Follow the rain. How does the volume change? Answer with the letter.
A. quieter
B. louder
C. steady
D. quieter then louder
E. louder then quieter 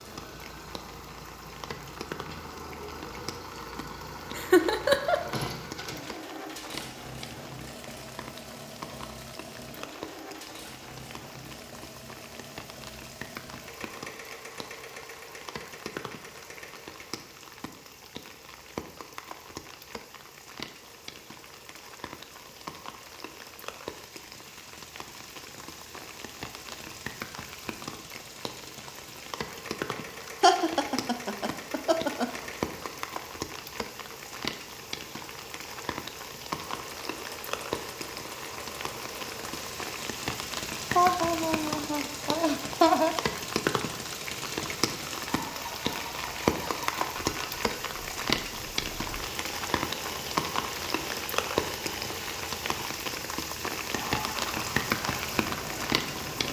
B.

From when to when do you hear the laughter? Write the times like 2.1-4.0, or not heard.
4.3-5.2, 30.4-32.3, 40.9-43.1.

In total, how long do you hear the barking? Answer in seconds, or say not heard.
not heard.